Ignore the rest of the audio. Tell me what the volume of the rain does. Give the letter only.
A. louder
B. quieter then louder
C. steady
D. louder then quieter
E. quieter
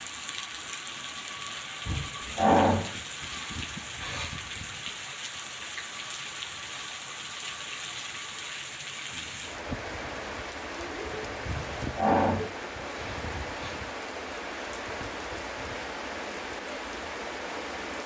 C.